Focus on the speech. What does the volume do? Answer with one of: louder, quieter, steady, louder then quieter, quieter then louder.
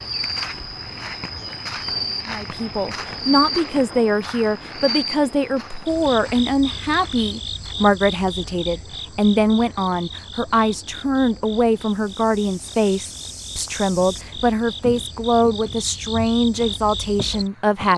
steady.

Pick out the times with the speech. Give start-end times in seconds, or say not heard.
2.2-17.9.